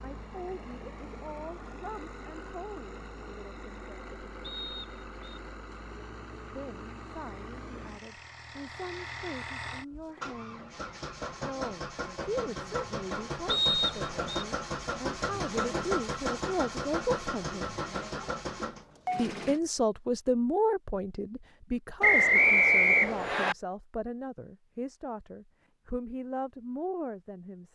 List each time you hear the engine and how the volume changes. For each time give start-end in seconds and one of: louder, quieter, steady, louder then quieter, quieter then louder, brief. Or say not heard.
0.0-19.6 louder.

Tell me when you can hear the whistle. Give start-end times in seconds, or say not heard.
4.4-5.2, 13.4-14.4, 22.0-23.6.